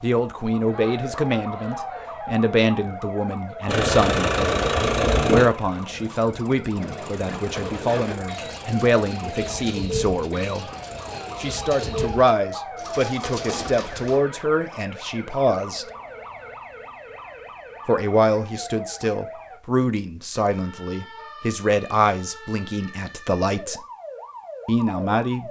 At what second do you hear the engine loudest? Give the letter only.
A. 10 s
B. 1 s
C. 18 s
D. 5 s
D.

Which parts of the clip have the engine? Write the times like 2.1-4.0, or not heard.
3.6-11.4.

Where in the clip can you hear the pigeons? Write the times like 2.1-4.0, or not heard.
6.7-14.2.